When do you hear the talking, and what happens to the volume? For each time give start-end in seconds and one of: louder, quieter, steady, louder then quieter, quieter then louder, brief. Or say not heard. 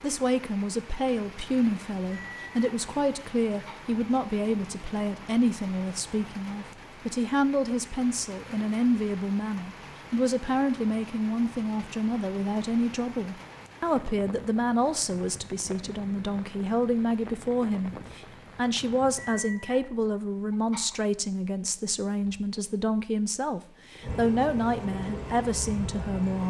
0.0-26.4 steady.